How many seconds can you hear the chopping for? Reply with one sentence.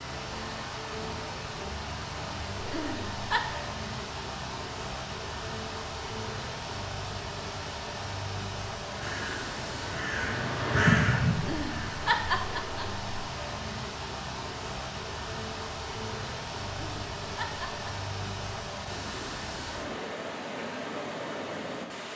You can't hear the chopping here.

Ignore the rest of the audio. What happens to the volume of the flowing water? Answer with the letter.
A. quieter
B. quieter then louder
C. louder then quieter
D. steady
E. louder
D.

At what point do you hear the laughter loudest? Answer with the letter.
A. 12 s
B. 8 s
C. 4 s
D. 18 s
A.